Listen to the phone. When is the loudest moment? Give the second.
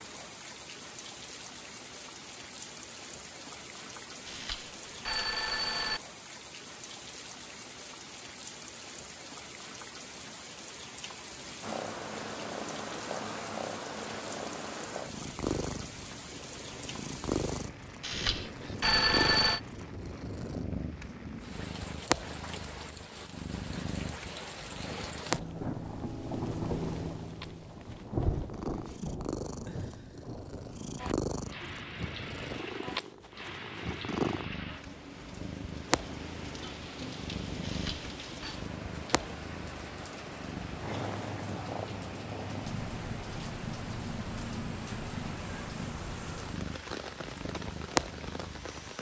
19 s.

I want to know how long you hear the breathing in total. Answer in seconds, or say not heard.
not heard.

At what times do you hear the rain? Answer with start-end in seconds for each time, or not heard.
0.0-48.9.